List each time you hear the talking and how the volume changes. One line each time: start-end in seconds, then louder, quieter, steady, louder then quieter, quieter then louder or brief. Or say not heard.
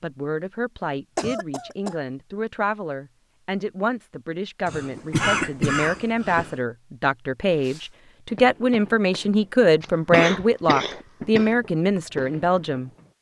0.0-12.9 louder.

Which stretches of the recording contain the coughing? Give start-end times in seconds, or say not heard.
1.1-2.0, 4.7-6.5, 9.8-11.5.